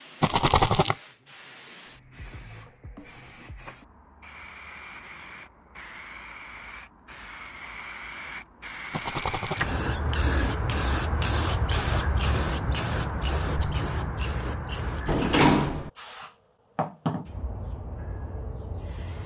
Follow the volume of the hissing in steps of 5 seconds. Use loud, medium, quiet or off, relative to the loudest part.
quiet, medium, loud, medium.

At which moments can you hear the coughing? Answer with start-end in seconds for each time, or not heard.
not heard.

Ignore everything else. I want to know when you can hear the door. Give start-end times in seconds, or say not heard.
15.1-15.9.